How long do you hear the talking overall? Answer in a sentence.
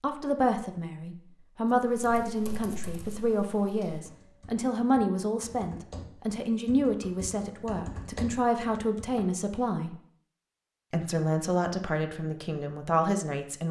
You can hear the talking for 13 seconds altogether.